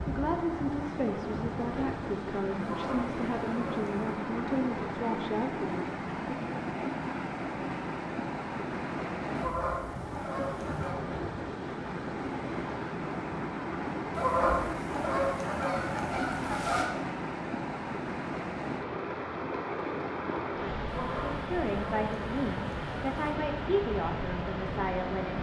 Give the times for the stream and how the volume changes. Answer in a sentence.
You can hear the stream from 0.0 to 25.3 s, at a steady volume.